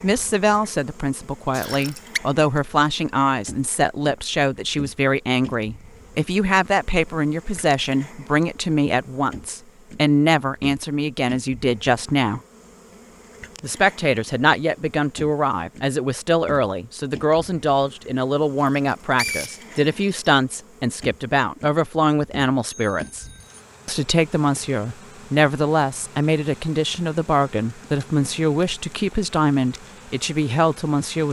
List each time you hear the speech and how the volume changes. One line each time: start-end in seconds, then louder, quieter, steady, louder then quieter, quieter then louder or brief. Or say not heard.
0.0-12.4 steady
13.6-23.2 steady
23.9-31.2 steady.